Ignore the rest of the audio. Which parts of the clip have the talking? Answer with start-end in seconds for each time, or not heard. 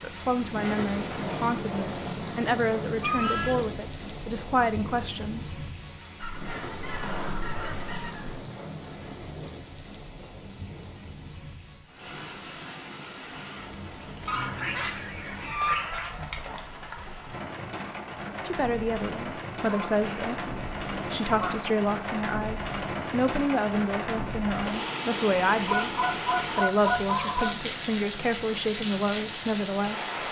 0.0-5.5, 18.3-30.2.